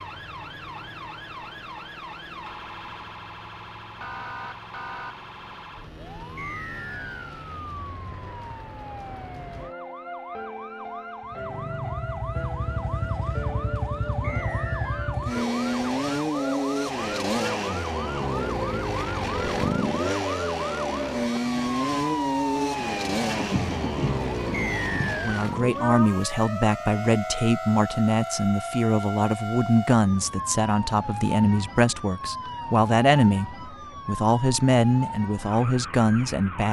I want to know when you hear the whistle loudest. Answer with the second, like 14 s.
25 s.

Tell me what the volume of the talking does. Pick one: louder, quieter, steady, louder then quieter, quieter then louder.
steady.